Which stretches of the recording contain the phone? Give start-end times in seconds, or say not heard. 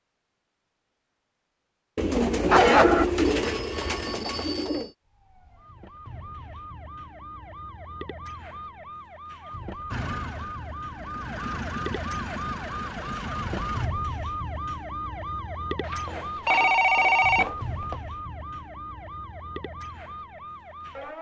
2.5-4.8, 15.8-17.9.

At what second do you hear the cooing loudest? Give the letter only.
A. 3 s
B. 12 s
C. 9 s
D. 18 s
A.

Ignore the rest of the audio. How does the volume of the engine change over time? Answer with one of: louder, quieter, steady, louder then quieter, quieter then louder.
louder.